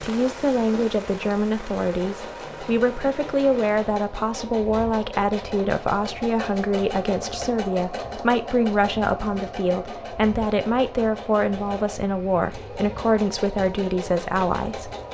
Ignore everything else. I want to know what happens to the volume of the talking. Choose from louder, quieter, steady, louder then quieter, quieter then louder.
steady.